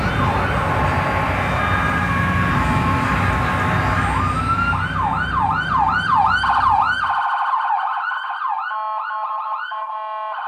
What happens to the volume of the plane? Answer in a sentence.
The loudness of the plane goes down.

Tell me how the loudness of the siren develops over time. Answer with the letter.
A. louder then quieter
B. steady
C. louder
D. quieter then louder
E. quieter
A.